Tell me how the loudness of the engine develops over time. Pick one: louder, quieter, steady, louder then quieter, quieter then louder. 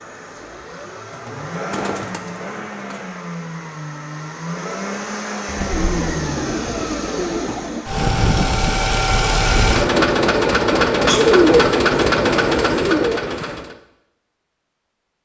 louder.